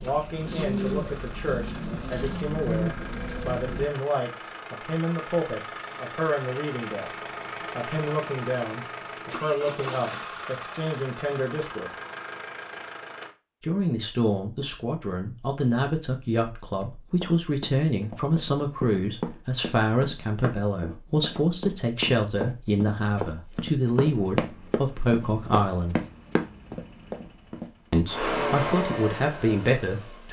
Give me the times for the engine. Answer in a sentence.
You can hear the engine from 0.0 to 13.3 s and from 24.1 to 30.2 s.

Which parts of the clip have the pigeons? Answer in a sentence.
The pigeons can be heard from 0.0 to 3.9 s.